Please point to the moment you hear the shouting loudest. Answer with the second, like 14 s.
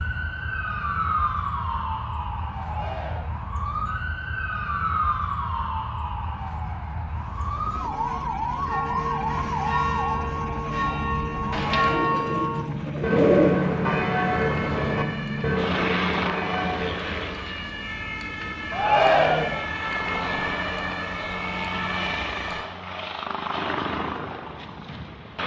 19 s.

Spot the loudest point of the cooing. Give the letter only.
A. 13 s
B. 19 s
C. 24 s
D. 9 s
A.